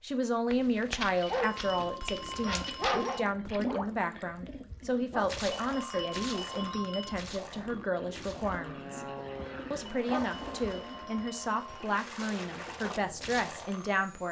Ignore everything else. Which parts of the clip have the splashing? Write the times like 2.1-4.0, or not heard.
2.5-13.9.